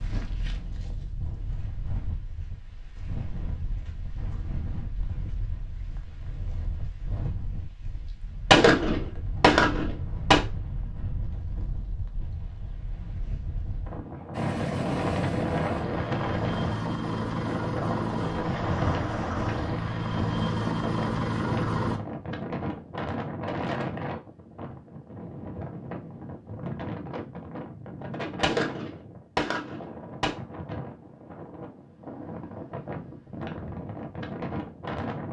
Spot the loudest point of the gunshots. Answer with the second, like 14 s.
9 s.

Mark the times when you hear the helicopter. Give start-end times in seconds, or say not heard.
14.3-22.0.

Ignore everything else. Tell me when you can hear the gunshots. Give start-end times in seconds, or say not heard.
8.5-10.4, 28.4-30.3.